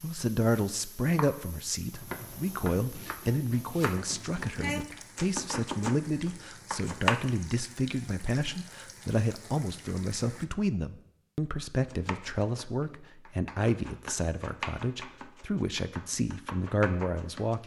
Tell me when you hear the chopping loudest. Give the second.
7 s.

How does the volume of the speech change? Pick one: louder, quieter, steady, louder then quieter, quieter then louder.
steady.